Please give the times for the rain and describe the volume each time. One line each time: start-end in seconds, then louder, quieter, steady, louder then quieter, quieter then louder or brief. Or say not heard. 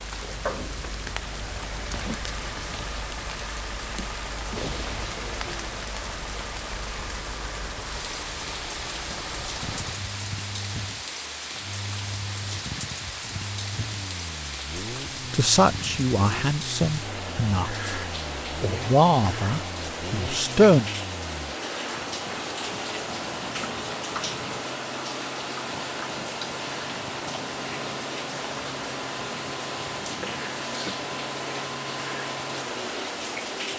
0.0-33.7 steady.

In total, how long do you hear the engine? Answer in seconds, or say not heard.
34 s.